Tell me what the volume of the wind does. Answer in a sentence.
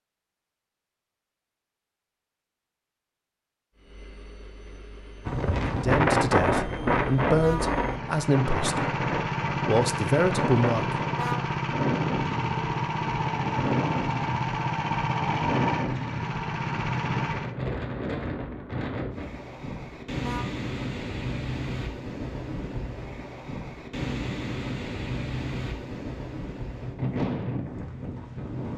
The volume of the wind goes down.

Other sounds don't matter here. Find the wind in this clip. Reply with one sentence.
You can hear the wind from 5.2 to 28.7 s.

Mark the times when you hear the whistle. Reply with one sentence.
The whistle can't be heard in this clip.